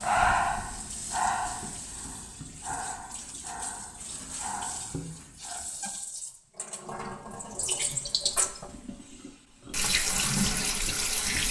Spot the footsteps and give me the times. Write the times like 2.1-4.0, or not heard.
not heard.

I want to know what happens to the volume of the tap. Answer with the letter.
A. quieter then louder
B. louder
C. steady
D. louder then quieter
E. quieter
B.